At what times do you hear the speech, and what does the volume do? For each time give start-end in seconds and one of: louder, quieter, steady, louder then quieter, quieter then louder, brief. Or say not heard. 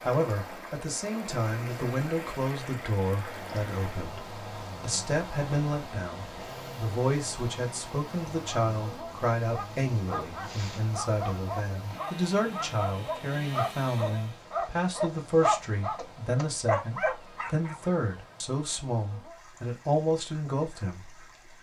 0.1-21.5 steady.